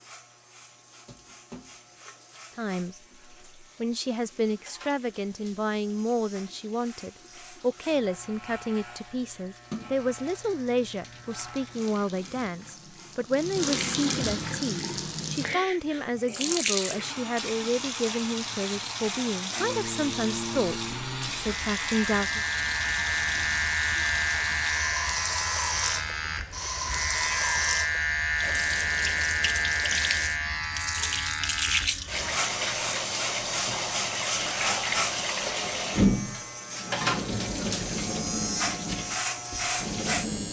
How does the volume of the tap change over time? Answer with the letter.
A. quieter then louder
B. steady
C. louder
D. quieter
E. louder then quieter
C.